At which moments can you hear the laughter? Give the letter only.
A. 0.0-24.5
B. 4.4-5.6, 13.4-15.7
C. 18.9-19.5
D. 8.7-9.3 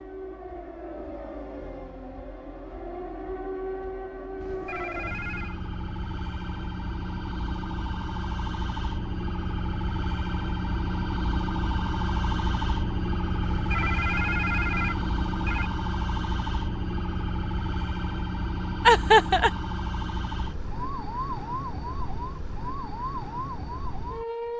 C.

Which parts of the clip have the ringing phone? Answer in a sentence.
You can hear the ringing phone from 4.4 to 5.6 s and from 13.4 to 15.7 s.